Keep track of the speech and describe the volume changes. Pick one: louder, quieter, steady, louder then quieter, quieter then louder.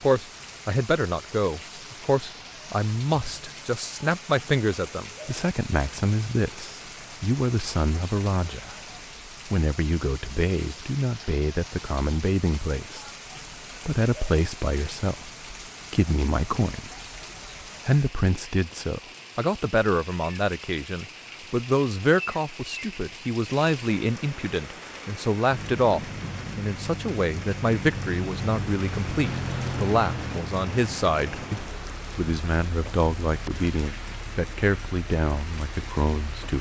steady.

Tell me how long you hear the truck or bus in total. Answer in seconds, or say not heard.
11 s.